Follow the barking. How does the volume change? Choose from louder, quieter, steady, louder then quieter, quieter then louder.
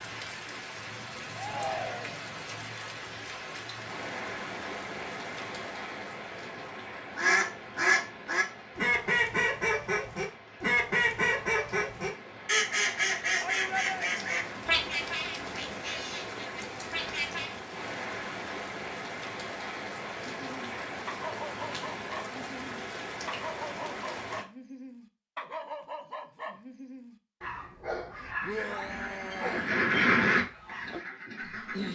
steady.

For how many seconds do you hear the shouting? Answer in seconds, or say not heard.
3 s.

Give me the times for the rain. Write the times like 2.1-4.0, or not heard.
0.0-24.4.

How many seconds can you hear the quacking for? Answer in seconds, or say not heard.
14 s.